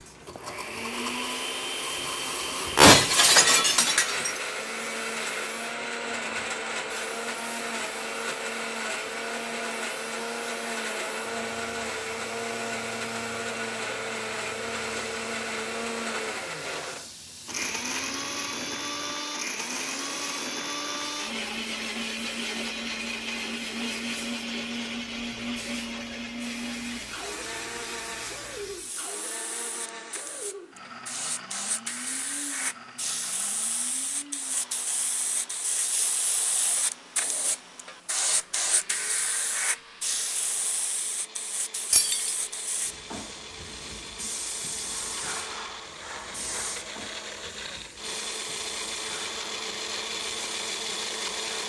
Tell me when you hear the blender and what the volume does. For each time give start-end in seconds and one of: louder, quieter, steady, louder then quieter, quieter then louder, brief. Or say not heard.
0.1-51.6 quieter then louder.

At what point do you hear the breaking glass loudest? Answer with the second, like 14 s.
3 s.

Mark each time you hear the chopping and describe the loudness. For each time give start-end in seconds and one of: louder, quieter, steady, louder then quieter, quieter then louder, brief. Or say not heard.
not heard.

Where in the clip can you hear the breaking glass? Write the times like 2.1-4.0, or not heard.
2.8-4.3, 41.9-42.4.